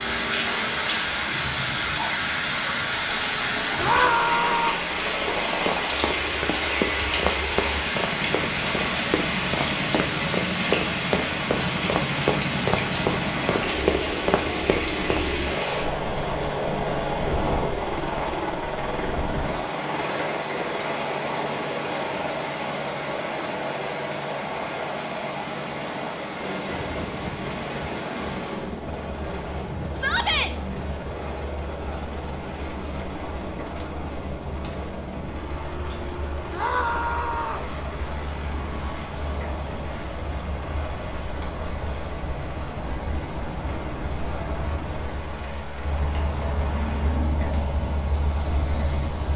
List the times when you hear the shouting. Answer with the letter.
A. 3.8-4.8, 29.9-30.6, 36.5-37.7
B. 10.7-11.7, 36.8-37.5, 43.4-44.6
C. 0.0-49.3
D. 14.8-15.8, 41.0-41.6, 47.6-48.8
A.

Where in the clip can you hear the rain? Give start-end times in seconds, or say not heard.
0.0-49.3.